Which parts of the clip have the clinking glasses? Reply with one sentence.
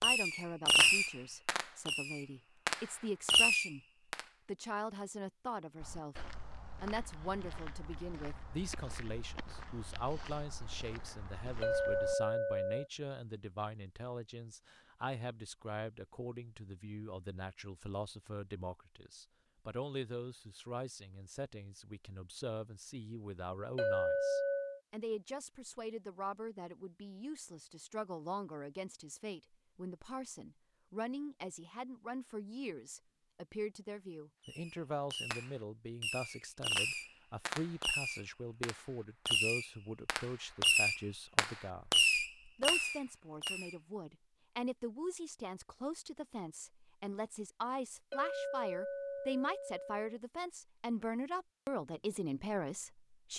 You can hear the clinking glasses from 11.6 to 12.9 s, from 23.8 to 24.8 s and from 48.1 to 50.0 s.